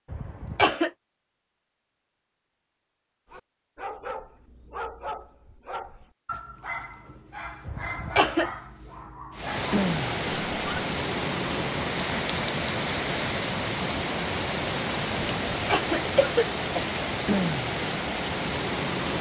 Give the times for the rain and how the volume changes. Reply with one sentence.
You can hear the rain from 9.3 to 19.1 s, at a steady volume.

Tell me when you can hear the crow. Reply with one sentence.
The crow can't be heard in this clip.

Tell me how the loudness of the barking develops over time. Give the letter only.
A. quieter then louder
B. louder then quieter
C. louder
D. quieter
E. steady
E.